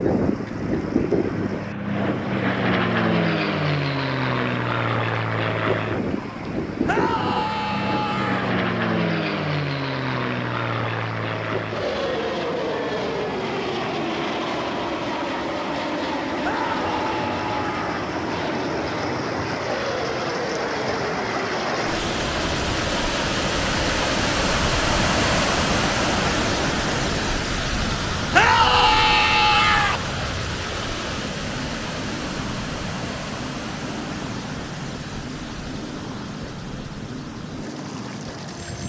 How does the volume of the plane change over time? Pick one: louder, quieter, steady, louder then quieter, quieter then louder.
quieter.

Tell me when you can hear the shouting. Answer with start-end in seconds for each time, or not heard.
6.8-8.5, 16.4-18.1, 28.3-30.0.